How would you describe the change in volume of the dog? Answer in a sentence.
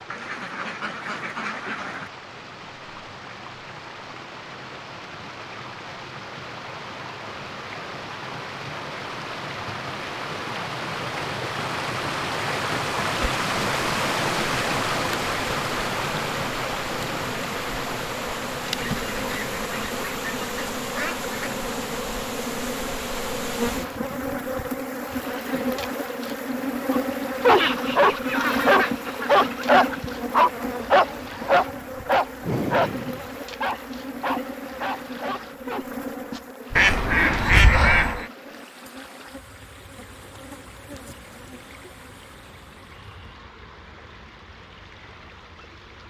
The volume of the dog goes down.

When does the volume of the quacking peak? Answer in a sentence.
The loudest moment of the quacking is at 38 seconds.